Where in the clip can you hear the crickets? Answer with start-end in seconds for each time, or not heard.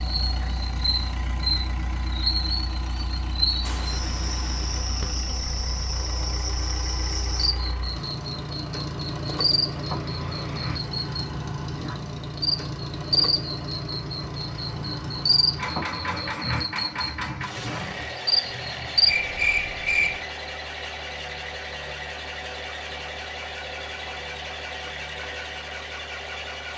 0.0-20.2.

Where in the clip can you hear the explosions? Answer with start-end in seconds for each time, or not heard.
3.6-4.8.